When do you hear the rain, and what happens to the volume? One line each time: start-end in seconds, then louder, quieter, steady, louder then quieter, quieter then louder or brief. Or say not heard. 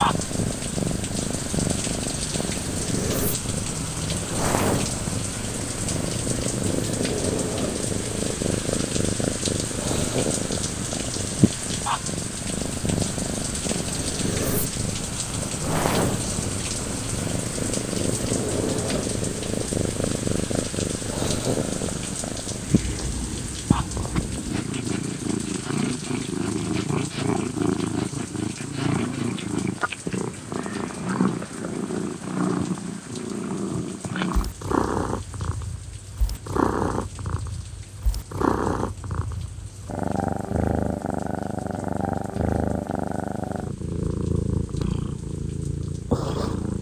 0.0-46.7 quieter.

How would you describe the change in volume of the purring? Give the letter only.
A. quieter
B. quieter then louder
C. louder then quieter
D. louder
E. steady
E.